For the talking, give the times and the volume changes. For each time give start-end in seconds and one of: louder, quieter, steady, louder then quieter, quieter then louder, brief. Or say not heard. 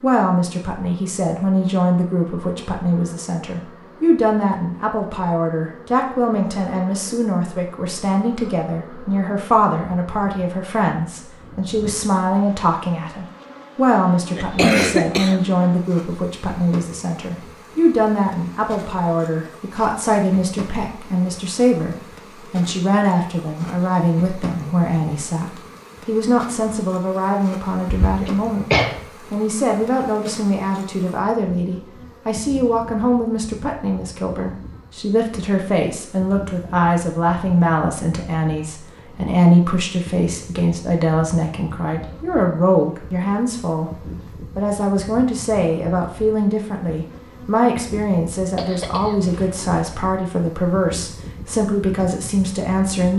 0.0-53.1 steady.